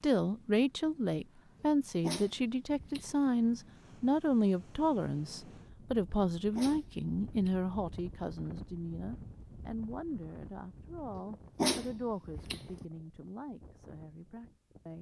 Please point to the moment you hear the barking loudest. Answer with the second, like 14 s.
12 s.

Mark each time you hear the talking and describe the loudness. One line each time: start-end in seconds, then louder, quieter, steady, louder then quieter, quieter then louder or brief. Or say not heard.
0.0-14.9 quieter.